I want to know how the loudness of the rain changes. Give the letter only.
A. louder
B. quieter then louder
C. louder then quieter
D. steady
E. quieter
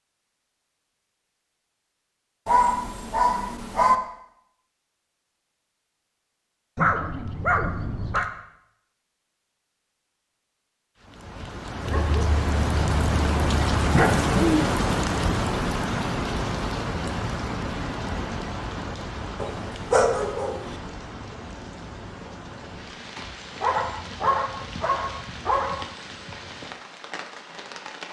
E.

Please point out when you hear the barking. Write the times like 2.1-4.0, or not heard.
2.5-4.0, 6.8-8.2, 11.8-14.3, 19.4-20.8, 23.6-25.9.